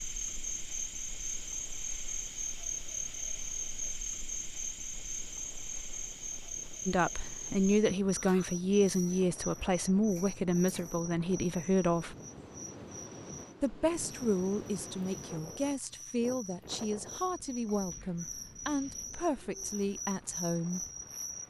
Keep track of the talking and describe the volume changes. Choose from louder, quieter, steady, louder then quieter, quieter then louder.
quieter.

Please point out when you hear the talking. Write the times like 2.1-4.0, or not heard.
6.8-12.2, 13.6-20.9.